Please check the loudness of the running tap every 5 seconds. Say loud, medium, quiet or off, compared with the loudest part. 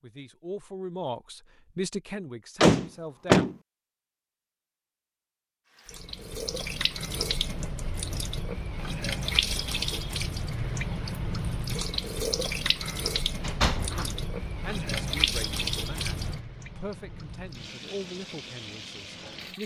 off, loud, loud, loud.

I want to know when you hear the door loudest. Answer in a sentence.
The loudest moment of the door is at 3 seconds.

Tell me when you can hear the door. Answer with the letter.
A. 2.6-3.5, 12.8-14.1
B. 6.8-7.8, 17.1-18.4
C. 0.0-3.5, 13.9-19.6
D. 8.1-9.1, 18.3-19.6
A.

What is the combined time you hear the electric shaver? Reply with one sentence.
You can't hear the electric shaver here.